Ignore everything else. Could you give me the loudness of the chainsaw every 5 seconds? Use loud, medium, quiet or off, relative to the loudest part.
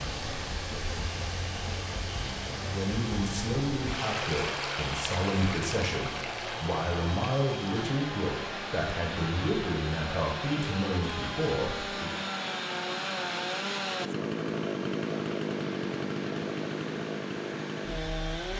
medium, medium, loud, loud.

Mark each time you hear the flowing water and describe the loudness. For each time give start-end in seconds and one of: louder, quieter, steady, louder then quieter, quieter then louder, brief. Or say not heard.
0.0-18.5 quieter.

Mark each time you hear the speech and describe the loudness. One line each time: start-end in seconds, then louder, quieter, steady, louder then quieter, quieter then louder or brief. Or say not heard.
2.7-12.2 steady.